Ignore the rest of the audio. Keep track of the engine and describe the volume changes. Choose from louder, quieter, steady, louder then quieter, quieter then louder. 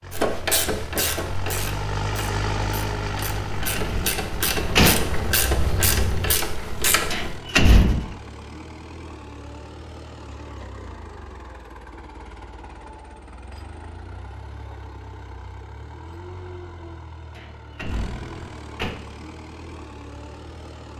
quieter.